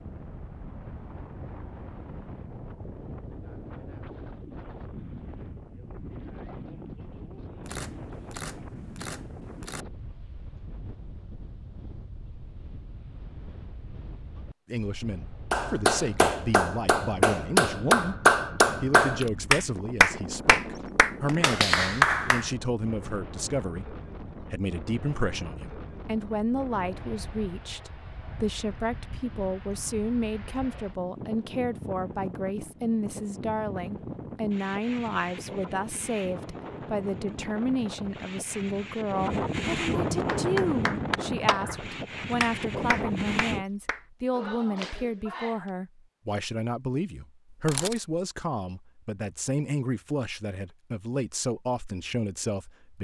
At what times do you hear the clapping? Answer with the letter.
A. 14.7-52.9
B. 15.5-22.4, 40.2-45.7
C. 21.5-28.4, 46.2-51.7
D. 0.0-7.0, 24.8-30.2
B.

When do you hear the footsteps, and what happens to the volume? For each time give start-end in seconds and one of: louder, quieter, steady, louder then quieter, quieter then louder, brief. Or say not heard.
not heard.